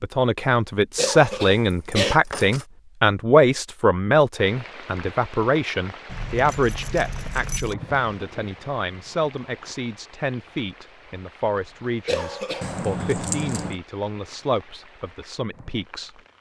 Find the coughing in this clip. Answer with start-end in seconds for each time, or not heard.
0.9-2.2, 12.1-12.7.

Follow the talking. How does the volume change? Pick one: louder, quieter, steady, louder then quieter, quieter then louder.
quieter.